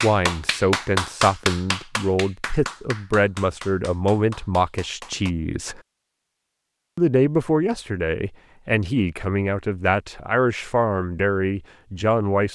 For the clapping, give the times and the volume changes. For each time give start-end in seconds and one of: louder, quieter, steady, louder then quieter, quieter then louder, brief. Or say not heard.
0.0-5.3 quieter.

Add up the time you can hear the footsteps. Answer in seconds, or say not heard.
not heard.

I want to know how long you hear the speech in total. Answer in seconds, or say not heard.
11 s.